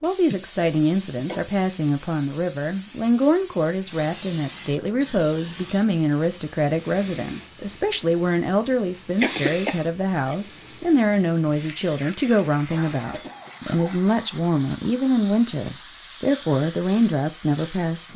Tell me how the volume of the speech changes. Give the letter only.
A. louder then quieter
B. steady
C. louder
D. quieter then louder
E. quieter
B.